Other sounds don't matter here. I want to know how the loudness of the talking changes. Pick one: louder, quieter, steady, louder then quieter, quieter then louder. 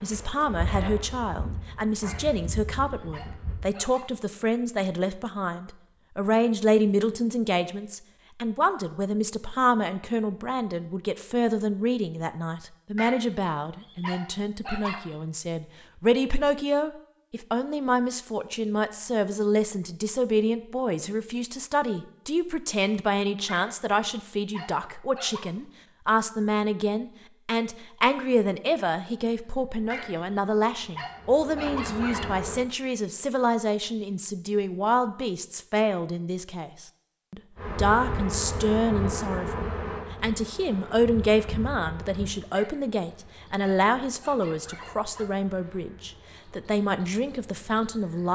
steady.